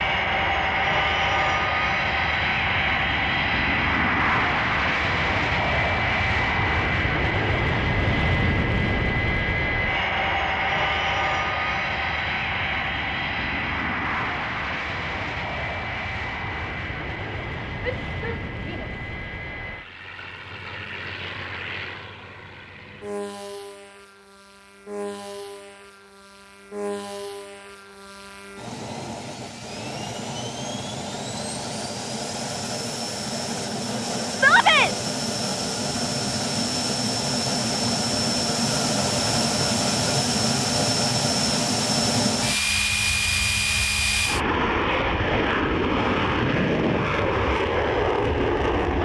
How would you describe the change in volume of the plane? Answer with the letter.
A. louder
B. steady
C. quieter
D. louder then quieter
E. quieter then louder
E.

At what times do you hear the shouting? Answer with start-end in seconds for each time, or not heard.
17.8-18.9, 34.3-34.9.